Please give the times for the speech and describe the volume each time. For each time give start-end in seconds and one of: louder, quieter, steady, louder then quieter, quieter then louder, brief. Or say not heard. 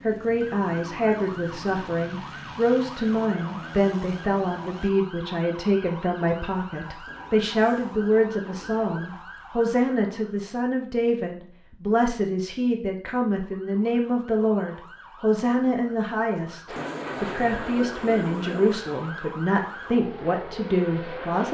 0.0-21.4 steady.